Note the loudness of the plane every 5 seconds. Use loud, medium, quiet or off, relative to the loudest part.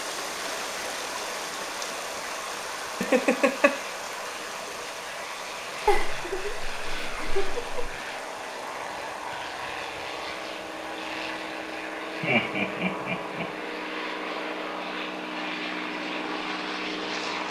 medium, medium, loud, loud.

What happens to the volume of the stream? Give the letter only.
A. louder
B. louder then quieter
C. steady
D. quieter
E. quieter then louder
D.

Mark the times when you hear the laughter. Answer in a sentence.
The laughter can be heard from 3.0 to 3.8 s, from 5.8 to 7.9 s and from 12.2 to 13.4 s.